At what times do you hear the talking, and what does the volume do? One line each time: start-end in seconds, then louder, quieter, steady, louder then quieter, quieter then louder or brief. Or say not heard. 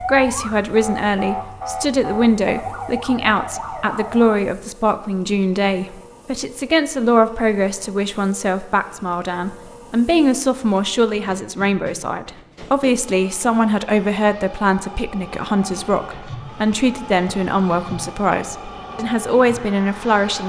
0.0-20.4 steady.